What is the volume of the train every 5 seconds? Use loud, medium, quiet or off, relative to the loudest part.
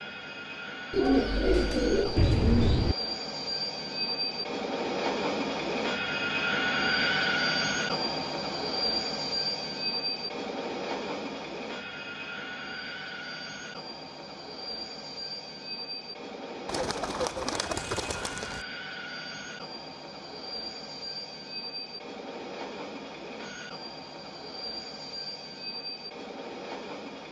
medium, loud, medium, medium, medium, medium.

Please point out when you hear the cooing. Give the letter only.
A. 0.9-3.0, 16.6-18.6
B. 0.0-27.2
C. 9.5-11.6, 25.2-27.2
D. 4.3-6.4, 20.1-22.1
A.